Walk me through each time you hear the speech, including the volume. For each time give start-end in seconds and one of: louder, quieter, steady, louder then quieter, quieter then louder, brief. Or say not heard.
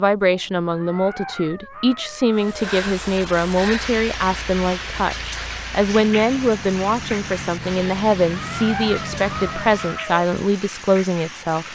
0.0-11.7 steady.